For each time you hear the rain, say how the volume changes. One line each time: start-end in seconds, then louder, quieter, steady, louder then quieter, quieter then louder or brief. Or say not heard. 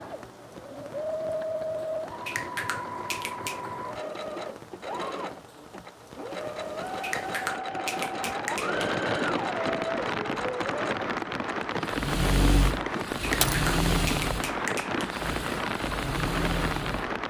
0.0-17.2 louder.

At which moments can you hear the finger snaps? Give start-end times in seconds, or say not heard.
2.2-3.6, 7.0-8.8, 13.2-15.1.